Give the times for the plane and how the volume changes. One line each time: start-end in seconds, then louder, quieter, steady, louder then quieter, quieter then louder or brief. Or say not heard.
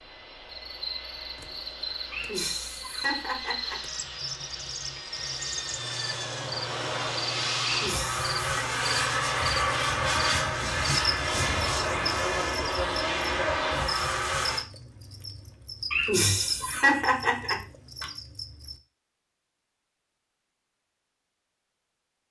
0.0-14.7 louder.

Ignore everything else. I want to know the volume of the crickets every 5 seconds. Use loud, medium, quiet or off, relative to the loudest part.
loud, loud, loud, loud, off.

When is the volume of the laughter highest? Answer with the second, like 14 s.
17 s.